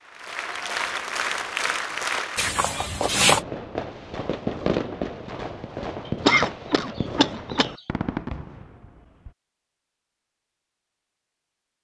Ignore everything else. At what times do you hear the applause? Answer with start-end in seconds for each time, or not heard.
0.0-2.5.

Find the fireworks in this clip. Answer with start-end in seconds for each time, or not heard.
3.1-9.3.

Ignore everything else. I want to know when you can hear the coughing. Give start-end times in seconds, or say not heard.
2.4-3.4, 6.0-7.7.